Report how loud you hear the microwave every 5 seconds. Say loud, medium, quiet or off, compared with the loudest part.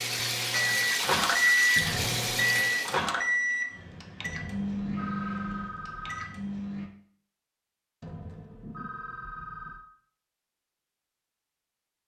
loud, medium, off.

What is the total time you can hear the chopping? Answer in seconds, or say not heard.
not heard.